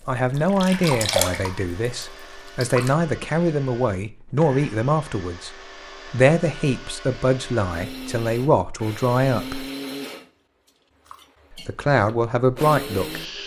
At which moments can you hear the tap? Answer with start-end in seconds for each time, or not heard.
0.1-3.0.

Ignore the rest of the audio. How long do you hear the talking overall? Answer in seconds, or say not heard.
11 s.